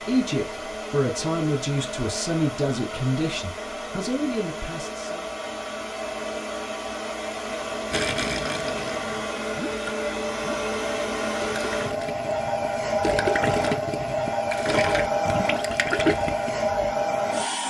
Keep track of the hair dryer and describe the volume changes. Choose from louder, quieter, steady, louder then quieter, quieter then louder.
louder.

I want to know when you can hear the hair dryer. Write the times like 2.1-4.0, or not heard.
0.0-17.6.